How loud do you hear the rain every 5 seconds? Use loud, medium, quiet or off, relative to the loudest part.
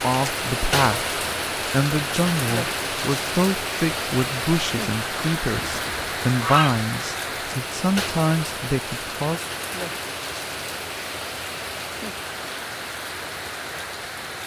loud, loud, medium.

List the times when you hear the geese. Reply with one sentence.
You can hear the geese from 5.5 to 6.8 s.